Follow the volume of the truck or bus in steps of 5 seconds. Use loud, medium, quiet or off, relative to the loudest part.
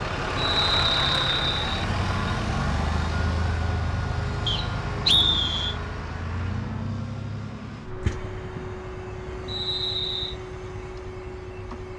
loud, medium, medium.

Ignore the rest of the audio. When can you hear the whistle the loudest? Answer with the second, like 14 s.
5 s.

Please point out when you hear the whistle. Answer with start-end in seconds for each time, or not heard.
0.3-1.9, 4.5-5.8, 9.4-10.3.